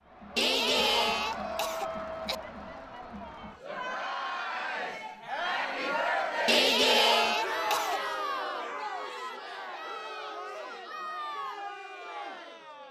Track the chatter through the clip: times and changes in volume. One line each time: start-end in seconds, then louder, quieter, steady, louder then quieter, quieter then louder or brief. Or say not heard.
0.1-12.8 louder then quieter.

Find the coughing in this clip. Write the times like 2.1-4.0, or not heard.
0.3-2.4, 6.5-8.0.